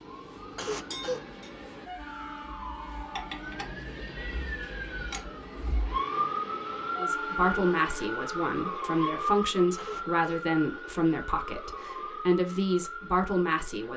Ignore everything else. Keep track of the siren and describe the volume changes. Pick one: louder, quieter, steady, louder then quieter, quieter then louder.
louder then quieter.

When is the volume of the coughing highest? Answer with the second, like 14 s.
1 s.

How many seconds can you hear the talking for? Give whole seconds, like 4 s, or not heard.
7 s.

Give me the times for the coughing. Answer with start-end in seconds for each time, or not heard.
0.3-1.2, 9.6-10.4.